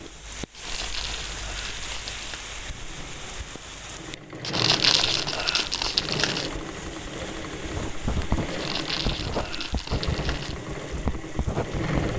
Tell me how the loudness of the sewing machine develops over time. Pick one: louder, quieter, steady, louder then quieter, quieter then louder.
louder.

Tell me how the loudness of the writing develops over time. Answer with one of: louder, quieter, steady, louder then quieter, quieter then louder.
quieter then louder.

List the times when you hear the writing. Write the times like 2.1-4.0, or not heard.
7.5-12.1.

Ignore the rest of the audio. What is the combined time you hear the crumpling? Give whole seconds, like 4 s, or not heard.
6 s.